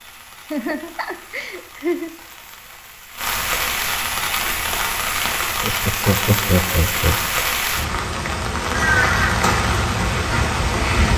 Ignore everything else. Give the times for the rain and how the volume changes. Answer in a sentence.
The rain can be heard from 0.0 to 11.1 s, getting louder.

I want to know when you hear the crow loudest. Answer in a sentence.
The volume of the crow peaks at 9 seconds.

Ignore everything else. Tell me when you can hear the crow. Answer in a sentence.
The crow can be heard from 8.7 to 11.1 s.